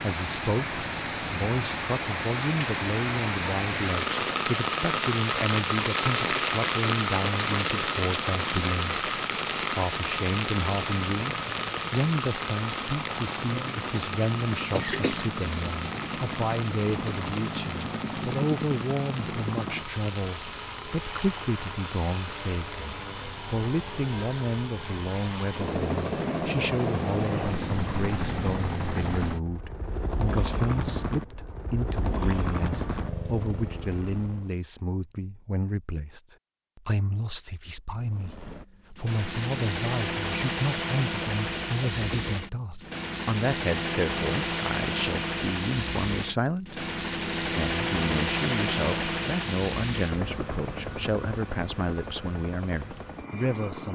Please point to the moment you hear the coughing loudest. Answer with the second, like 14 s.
15 s.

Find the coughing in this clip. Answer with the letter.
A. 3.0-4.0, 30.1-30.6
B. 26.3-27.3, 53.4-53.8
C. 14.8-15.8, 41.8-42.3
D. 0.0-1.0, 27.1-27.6
C.